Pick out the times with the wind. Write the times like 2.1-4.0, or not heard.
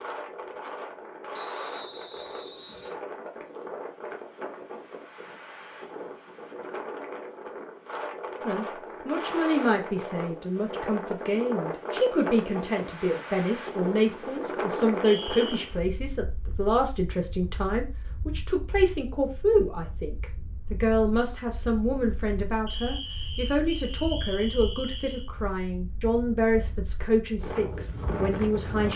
0.0-28.9.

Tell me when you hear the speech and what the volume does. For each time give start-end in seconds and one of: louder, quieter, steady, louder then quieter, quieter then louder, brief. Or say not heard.
8.4-28.9 steady.